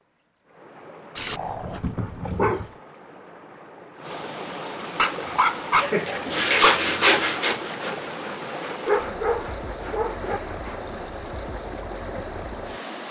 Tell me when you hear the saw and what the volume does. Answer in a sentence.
The saw can be heard from 5.8 to 10.8 s, getting quieter.